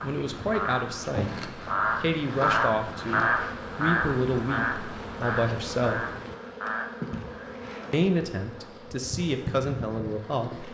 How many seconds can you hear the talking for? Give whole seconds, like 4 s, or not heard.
9 s.